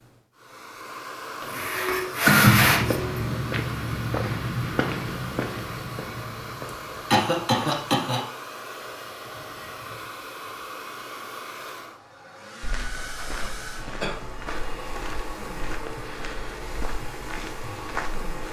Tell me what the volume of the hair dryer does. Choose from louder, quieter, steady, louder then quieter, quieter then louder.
steady.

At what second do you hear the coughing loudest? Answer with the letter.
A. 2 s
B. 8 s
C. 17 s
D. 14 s
A.